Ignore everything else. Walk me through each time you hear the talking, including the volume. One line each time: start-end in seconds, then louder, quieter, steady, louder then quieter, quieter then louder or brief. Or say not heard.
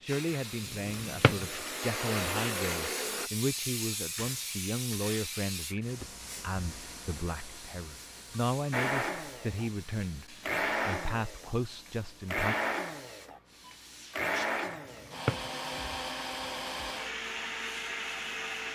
0.0-12.6 steady.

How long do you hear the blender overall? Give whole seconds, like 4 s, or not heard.
13 s.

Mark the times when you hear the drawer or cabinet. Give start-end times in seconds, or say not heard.
1.0-1.4, 14.9-15.5.